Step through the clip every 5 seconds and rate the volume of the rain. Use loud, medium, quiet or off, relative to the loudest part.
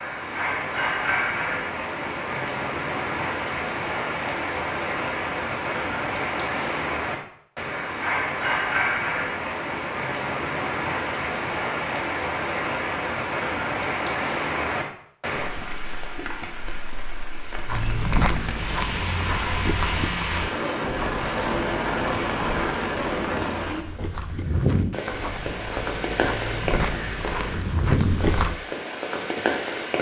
loud, loud, loud, medium, loud, loud.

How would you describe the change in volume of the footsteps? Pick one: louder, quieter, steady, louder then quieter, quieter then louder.
quieter then louder.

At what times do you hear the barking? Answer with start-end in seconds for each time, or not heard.
not heard.